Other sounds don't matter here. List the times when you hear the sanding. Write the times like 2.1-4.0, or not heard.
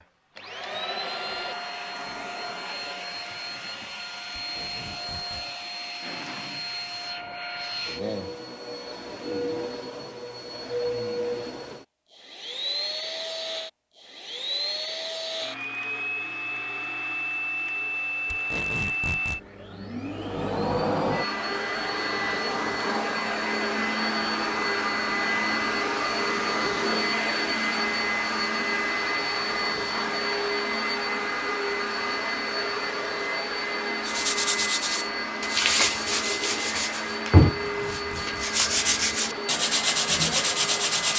34.0-41.1.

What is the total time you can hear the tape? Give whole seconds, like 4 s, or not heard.
3 s.